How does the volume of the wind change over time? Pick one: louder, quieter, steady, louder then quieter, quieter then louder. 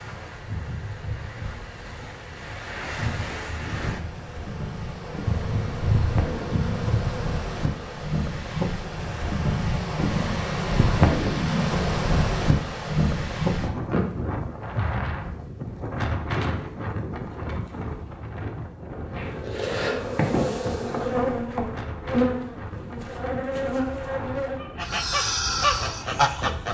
louder then quieter.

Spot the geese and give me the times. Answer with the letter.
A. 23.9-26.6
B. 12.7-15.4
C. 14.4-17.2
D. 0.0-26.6
A.